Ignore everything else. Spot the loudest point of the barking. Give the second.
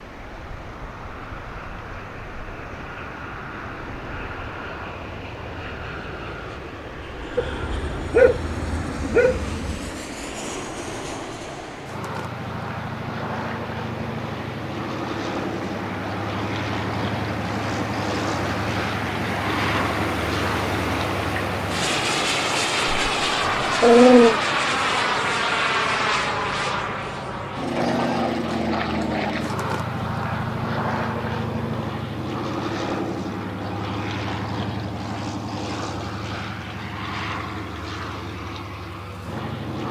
24 s.